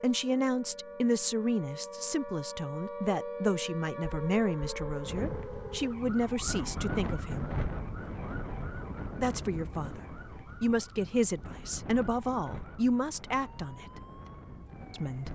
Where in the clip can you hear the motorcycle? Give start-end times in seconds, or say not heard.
not heard.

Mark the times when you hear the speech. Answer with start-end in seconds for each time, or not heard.
0.0-7.5, 9.2-14.0, 14.9-15.3.